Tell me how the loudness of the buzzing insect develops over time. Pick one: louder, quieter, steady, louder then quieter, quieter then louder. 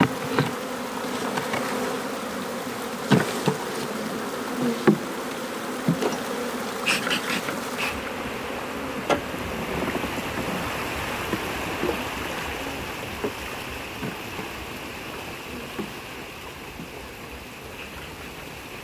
quieter.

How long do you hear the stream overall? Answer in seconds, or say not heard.
19 s.